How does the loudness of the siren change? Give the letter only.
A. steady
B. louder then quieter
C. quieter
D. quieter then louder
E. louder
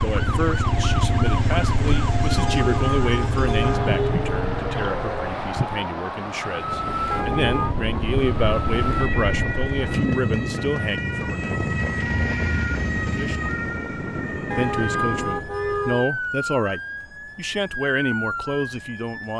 A.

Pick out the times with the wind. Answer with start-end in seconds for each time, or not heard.
0.0-15.6.